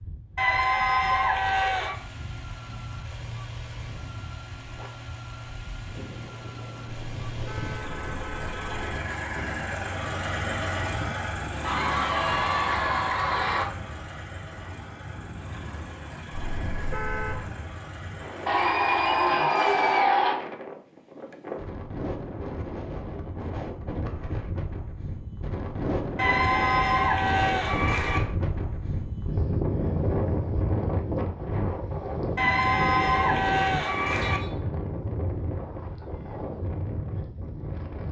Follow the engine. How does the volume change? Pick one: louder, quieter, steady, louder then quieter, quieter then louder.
louder then quieter.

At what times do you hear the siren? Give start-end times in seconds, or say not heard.
not heard.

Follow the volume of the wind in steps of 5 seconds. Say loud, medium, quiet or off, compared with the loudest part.
quiet, quiet, quiet, medium, medium, loud, loud, medium.